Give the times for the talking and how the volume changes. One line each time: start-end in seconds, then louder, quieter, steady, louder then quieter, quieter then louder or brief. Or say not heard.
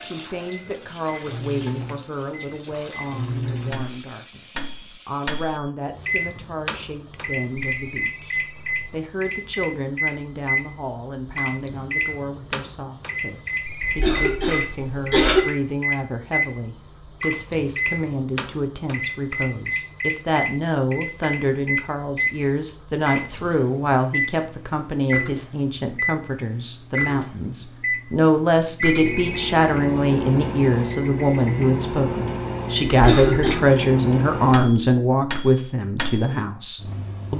0.0-37.3 louder.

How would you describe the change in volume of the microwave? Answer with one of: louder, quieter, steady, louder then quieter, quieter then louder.
steady.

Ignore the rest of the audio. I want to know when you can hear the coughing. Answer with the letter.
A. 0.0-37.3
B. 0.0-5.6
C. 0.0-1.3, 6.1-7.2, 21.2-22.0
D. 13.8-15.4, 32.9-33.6
D.